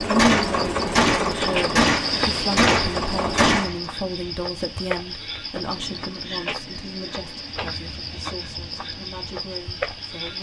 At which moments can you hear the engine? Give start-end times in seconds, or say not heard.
0.0-3.7.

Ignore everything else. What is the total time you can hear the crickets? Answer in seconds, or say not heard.
10 s.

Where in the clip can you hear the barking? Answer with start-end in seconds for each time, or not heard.
not heard.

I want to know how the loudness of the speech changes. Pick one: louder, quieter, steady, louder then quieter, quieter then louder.
quieter.